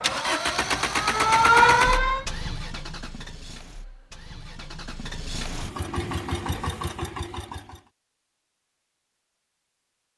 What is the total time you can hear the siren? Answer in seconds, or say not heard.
2 s.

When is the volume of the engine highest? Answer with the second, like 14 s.
1 s.